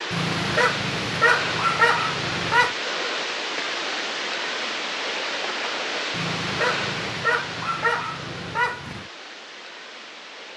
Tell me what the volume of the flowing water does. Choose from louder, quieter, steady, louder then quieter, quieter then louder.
quieter.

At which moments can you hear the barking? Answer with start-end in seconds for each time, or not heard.
0.1-2.8, 6.1-9.1.